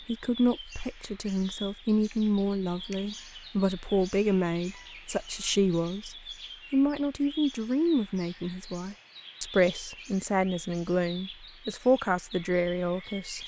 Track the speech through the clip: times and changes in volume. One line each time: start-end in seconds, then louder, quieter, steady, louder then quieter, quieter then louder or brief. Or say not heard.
0.1-13.4 steady.